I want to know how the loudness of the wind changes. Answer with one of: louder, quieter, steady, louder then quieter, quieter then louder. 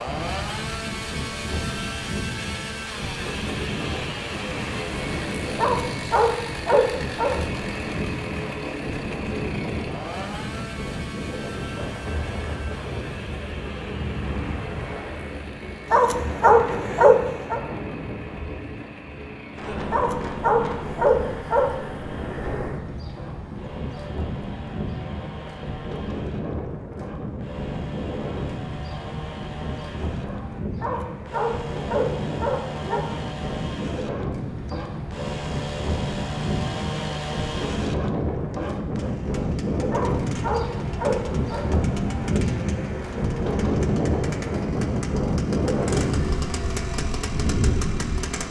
louder.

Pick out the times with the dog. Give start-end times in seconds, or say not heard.
5.5-7.3, 15.9-17.6, 19.9-21.7, 30.8-33.0, 39.9-41.6.